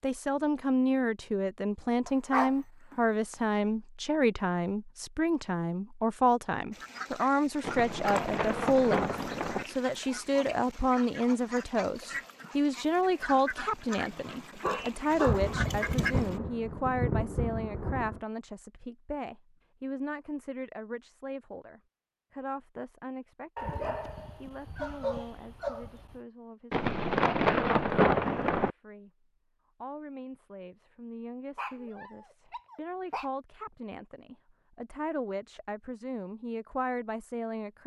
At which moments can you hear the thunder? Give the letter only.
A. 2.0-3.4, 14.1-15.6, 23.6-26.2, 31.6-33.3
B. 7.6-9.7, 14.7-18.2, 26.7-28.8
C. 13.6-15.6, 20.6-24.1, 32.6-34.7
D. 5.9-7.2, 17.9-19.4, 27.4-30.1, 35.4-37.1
B.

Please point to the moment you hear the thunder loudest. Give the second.
28 s.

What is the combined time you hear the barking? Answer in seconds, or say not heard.
7 s.